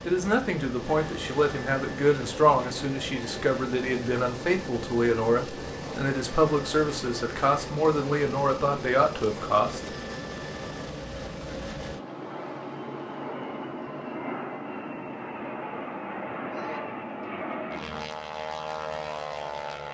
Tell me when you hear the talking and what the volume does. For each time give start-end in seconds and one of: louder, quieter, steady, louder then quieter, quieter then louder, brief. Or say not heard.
0.0-9.8 steady.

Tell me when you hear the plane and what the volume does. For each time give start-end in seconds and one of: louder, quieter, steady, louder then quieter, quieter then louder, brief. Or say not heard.
0.0-19.8 steady.